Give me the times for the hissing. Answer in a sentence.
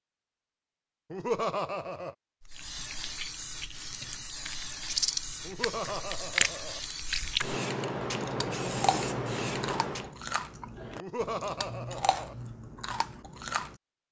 The hissing can be heard from 2.5 to 10.2 s.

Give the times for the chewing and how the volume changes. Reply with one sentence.
You can hear the chewing from 2.4 to 13.8 s, getting louder then quieter.